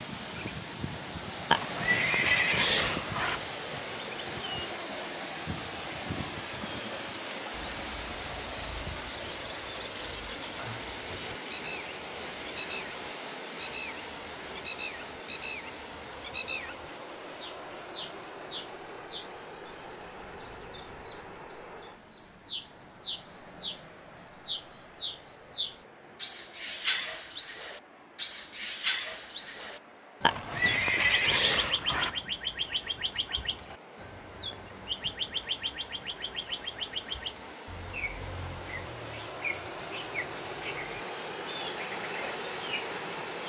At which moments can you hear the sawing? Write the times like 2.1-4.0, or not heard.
not heard.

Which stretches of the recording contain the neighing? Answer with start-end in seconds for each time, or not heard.
1.5-3.5, 30.2-32.2.